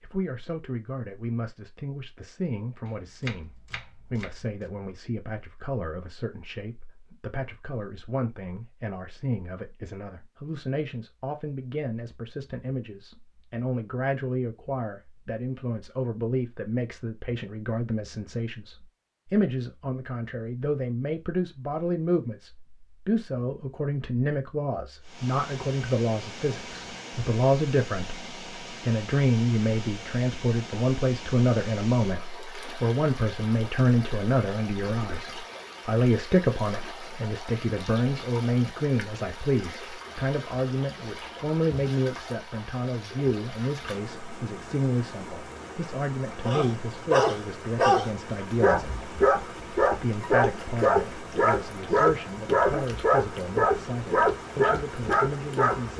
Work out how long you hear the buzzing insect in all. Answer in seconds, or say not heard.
not heard.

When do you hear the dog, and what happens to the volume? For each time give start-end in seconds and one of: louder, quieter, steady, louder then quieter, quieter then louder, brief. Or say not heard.
46.5-55.9 steady.